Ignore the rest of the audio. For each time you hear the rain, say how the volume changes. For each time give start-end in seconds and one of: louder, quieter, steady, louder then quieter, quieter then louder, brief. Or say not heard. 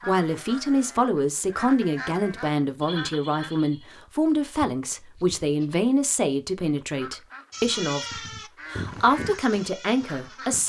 not heard.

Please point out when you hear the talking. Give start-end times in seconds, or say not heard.
0.1-10.6.